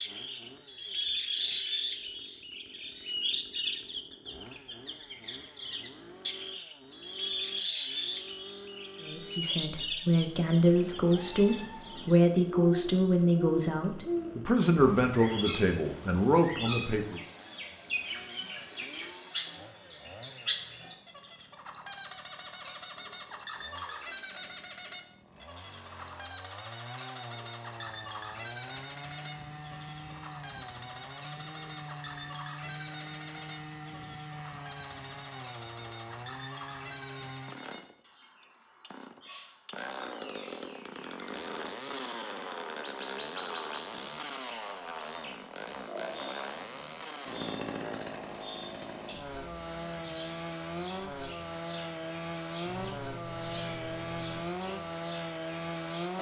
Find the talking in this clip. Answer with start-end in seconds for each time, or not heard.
9.0-17.2.